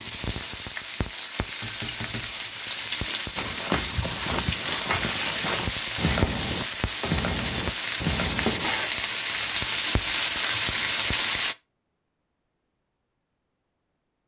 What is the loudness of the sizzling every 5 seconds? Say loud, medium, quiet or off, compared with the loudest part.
medium, loud, loud.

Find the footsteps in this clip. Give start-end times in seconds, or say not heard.
3.4-8.7.